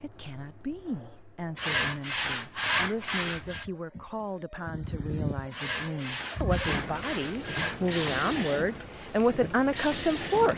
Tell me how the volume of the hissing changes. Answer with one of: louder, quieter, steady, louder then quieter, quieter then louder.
louder.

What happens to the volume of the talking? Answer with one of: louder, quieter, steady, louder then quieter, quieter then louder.
louder.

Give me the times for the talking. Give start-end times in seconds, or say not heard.
0.0-10.5.